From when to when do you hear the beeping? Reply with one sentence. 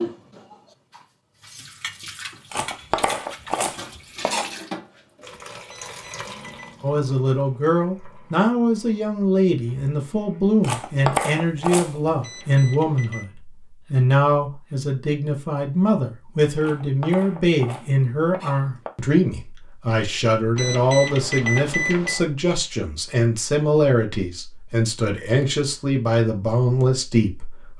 You can hear the beeping from 5.7 to 6.8 s, from 12.2 to 13.2 s and from 20.6 to 22.2 s.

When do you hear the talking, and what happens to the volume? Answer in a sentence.
The talking can be heard from 6.8 to 27.7 s, at a steady volume.